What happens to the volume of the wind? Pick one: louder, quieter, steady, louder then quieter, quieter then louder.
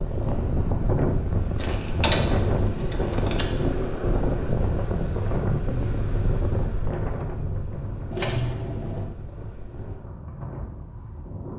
quieter.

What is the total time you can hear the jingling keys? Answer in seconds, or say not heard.
3 s.